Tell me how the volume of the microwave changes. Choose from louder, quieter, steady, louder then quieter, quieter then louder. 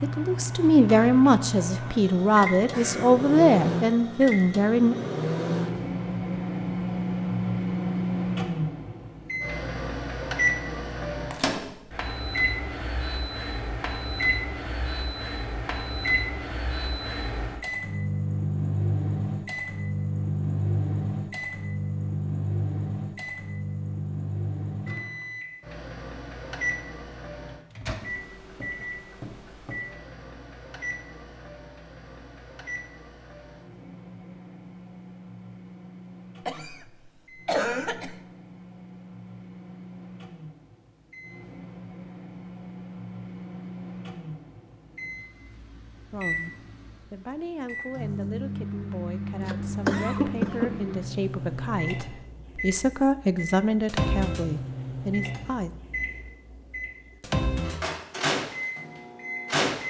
quieter then louder.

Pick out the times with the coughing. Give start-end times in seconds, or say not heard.
2.7-3.2, 36.5-38.1, 49.4-50.9.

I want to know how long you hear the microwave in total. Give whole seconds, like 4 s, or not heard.
60 s.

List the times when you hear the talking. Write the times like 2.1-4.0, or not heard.
0.0-5.0, 46.1-55.7.